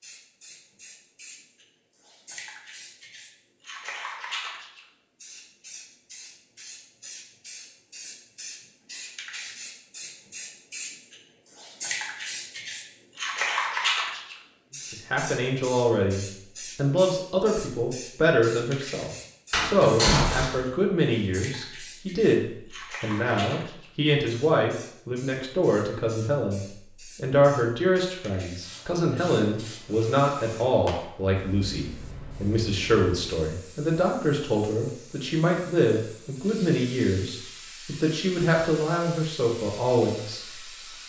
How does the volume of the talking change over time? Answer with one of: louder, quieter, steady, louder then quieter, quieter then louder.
steady.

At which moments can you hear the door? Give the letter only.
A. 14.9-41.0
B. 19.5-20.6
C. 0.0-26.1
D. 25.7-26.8
B.